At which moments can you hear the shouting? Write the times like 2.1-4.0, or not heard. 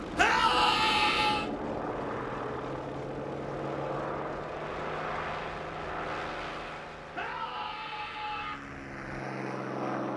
0.1-1.5, 7.1-8.6.